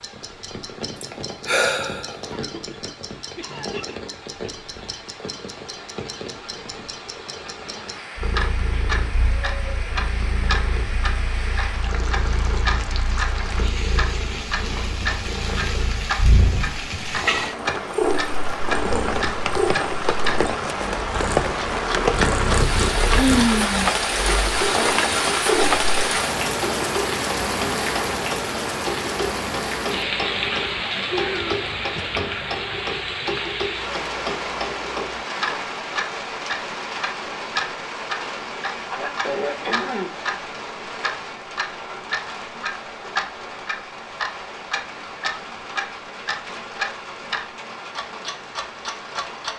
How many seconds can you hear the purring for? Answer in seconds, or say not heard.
18 s.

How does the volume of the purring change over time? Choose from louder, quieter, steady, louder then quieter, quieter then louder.
louder.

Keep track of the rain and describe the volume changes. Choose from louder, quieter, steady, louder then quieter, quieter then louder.
louder then quieter.